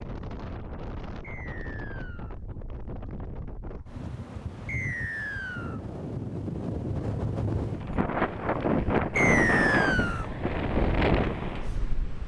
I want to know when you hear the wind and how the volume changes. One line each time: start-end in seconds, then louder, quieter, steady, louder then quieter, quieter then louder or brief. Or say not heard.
0.0-12.2 louder.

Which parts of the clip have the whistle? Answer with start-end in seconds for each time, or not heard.
1.2-2.4, 4.7-5.8, 9.2-10.2.